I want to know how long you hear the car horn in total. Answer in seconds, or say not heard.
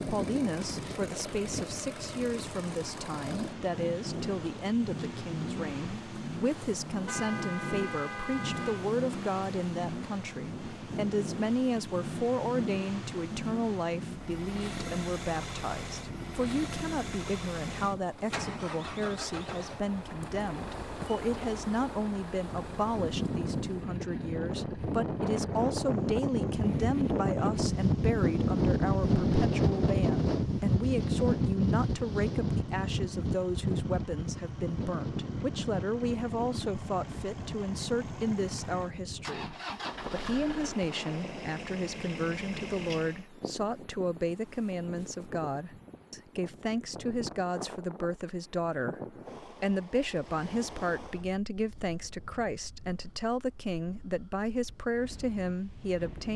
2 s.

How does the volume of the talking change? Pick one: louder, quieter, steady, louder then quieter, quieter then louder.
steady.